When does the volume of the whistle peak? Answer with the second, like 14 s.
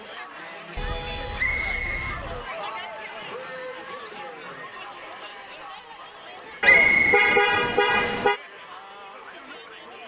7 s.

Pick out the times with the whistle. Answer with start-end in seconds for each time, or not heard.
1.4-3.0, 6.6-8.2.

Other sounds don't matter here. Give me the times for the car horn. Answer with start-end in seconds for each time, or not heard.
0.8-2.5, 6.6-8.4.